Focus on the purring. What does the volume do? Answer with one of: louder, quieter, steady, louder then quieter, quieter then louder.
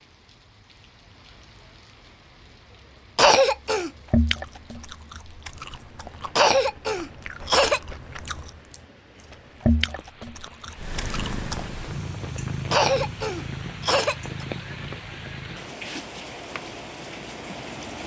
quieter.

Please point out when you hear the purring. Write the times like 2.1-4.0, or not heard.
10.8-18.0.